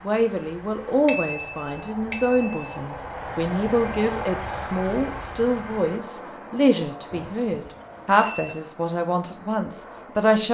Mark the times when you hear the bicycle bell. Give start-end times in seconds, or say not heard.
1.1-2.8, 7.1-8.6.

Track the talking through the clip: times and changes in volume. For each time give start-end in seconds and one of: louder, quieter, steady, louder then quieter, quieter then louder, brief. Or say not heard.
0.0-10.4 steady.